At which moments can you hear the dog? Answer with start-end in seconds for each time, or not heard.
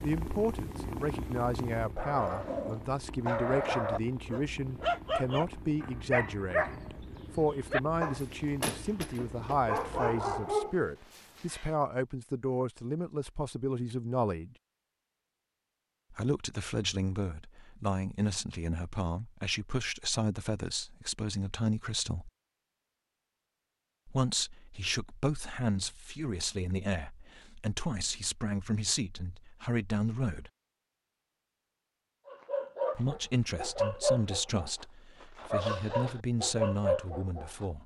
1.9-11.7, 32.2-37.6.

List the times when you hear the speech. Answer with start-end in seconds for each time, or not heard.
0.0-14.6, 16.1-22.3, 24.1-30.5, 33.0-37.8.